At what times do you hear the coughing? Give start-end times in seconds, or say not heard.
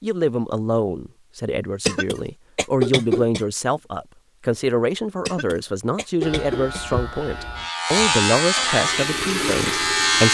1.9-3.4, 5.2-7.0.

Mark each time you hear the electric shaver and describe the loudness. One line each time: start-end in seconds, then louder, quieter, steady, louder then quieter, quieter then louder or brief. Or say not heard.
6.2-10.3 louder then quieter.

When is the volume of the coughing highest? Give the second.
3 s.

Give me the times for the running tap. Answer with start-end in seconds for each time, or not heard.
8.7-10.3.